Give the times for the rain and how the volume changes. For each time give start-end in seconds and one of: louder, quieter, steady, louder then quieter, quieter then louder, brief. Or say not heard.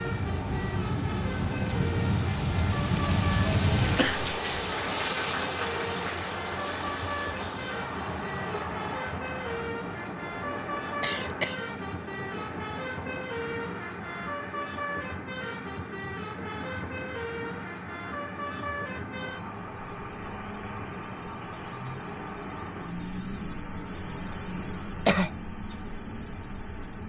0.0-27.0 quieter.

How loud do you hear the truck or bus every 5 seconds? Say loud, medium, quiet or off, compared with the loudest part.
loud, loud, loud, loud, loud, medium.